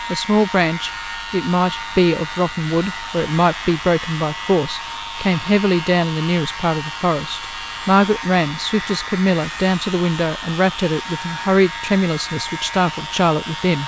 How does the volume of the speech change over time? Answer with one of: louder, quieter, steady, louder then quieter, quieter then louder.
steady.